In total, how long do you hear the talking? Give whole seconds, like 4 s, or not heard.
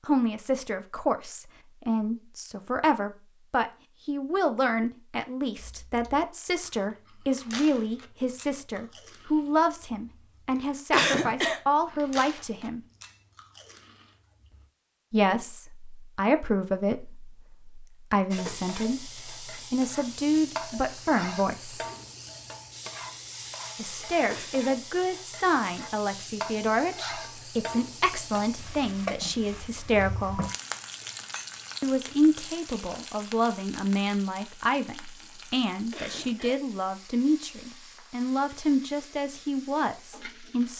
35 s.